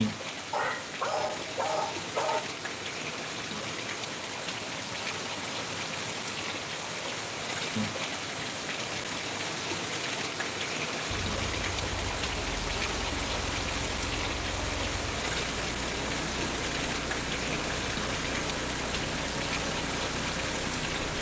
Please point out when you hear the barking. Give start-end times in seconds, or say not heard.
0.5-2.5.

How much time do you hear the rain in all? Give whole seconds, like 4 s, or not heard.
21 s.